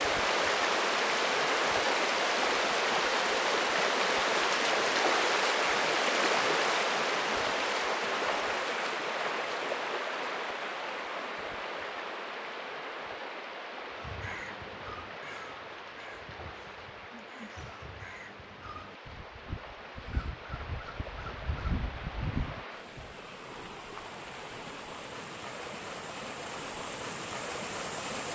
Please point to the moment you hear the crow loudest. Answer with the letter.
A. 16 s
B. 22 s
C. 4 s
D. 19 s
B.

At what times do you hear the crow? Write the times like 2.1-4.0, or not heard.
13.9-23.1.